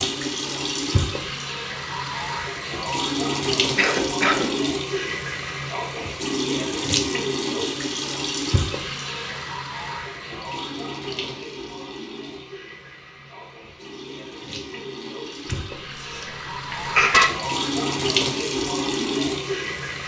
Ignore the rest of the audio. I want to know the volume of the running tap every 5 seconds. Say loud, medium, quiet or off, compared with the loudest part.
loud, loud, medium, loud.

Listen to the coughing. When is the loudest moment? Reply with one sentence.
The loudest moment of the coughing is at 17 seconds.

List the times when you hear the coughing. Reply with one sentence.
You can hear the coughing from 3.8 to 4.5 s and from 15.4 to 17.3 s.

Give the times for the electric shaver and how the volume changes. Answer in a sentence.
The electric shaver can't be heard in this clip.